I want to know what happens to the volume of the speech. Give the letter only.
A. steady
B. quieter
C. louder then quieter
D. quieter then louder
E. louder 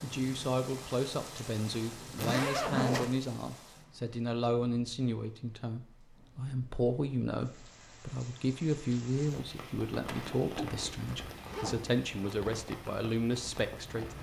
A.